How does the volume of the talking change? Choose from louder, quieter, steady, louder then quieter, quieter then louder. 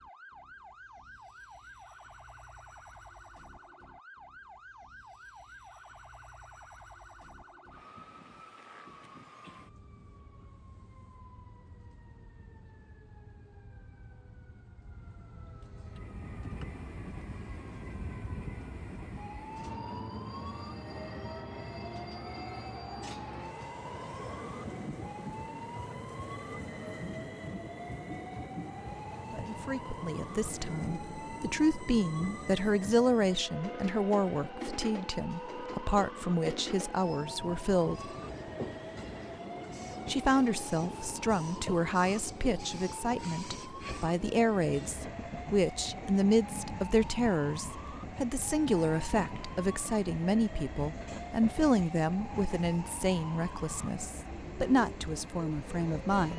steady.